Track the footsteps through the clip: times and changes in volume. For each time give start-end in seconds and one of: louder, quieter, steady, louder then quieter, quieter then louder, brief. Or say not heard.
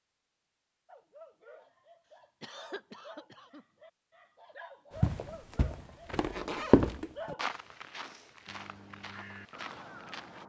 5.0-10.4 louder then quieter.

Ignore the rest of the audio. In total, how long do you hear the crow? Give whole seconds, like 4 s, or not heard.
2 s.